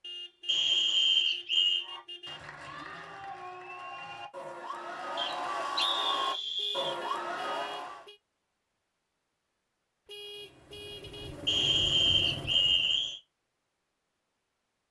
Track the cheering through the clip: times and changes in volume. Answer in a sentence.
The cheering can be heard from 1.8 to 8.1 s, getting louder.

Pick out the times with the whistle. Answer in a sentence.
You can hear the whistle from 0.5 to 1.9 s, from 5.2 to 7.0 s and from 11.4 to 13.2 s.